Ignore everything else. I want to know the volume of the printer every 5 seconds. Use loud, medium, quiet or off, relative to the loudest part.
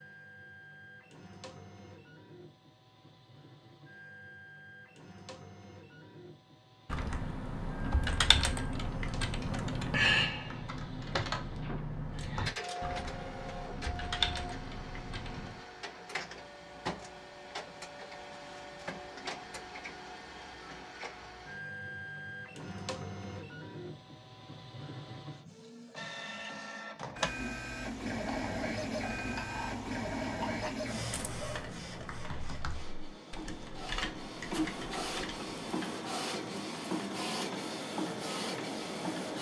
quiet, quiet, medium, medium, medium, loud, loud, loud.